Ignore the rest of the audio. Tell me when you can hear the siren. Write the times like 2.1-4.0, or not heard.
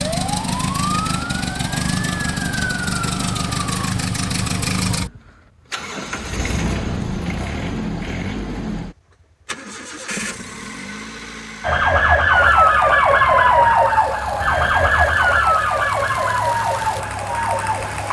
0.0-4.0, 11.6-18.0.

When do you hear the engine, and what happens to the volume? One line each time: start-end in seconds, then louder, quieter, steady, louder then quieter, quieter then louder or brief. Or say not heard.
0.0-18.0 quieter.